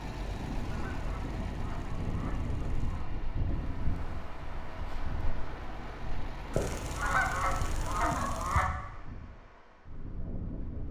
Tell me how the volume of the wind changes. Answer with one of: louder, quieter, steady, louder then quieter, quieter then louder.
quieter.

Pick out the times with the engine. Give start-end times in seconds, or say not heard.
0.0-8.1.